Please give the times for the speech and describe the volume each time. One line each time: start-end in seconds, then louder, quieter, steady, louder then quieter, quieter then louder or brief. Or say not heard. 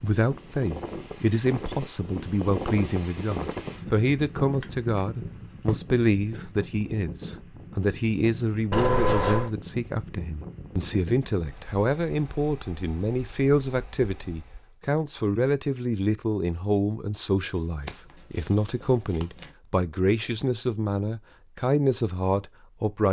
0.0-23.0 steady.